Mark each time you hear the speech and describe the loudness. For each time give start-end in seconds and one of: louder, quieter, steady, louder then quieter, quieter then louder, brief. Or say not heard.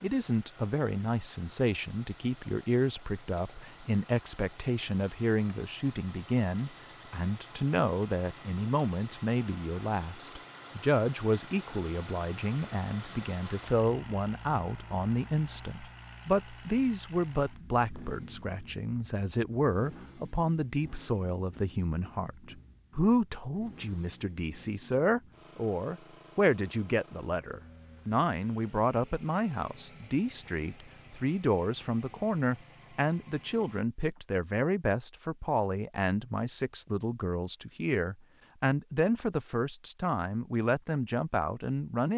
0.0-42.1 steady.